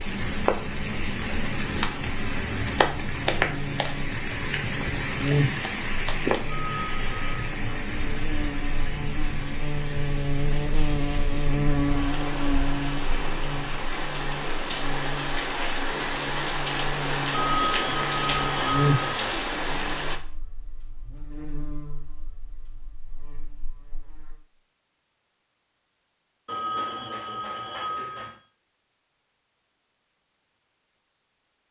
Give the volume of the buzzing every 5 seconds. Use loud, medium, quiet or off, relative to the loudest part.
medium, loud, loud, loud, quiet, off, off.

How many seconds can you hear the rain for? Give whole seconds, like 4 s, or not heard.
20 s.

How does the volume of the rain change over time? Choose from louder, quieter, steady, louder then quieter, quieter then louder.
quieter then louder.